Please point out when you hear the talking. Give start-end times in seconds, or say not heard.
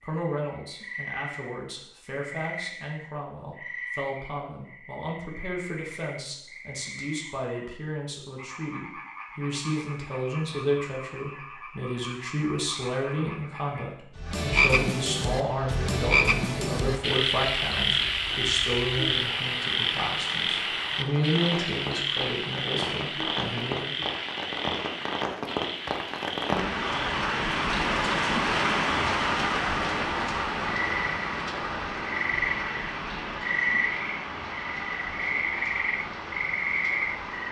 0.0-24.1.